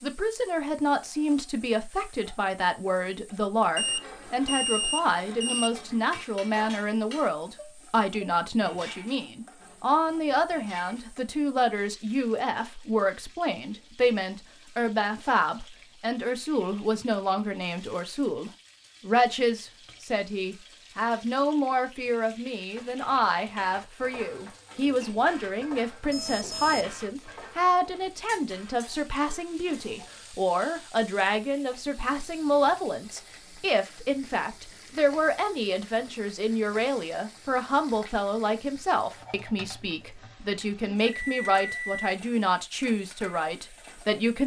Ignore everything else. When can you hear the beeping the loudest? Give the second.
5 s.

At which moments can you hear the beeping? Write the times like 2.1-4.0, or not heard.
3.8-5.7, 26.1-26.9, 40.5-42.1.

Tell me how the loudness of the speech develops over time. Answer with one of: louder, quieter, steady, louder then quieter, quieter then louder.
steady.